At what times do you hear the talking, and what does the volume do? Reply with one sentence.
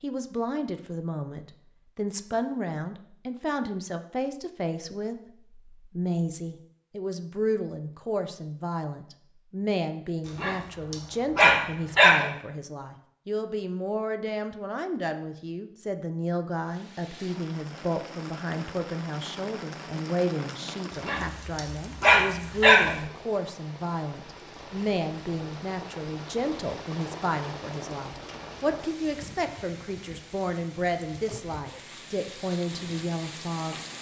The talking can be heard from 0.0 to 33.8 s, at a steady volume.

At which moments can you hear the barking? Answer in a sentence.
The barking can be heard from 10.2 to 12.2 s and from 20.9 to 22.9 s.